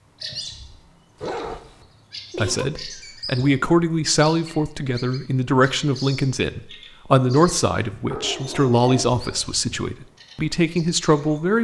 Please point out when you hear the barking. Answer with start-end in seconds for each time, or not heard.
1.1-2.6, 8.1-9.7.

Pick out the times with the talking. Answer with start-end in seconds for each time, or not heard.
2.4-11.5.